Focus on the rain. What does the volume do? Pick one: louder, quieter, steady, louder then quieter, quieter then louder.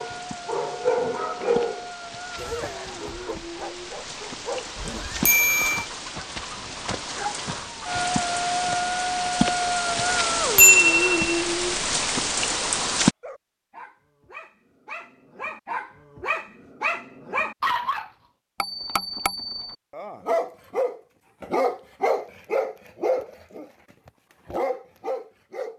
louder.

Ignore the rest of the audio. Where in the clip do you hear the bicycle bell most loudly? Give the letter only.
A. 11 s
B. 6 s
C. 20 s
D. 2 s
A.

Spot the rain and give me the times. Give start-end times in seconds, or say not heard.
0.0-13.2.